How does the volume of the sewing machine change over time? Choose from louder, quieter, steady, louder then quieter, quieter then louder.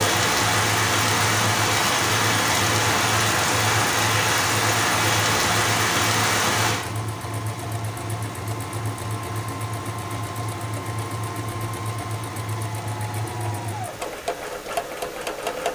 steady.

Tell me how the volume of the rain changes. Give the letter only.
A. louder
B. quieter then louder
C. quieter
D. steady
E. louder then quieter
C.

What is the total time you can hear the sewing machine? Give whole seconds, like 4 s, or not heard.
16 s.